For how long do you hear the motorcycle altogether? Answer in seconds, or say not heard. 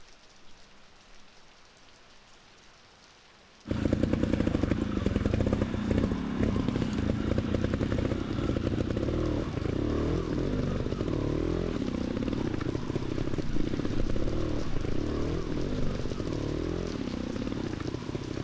15 s.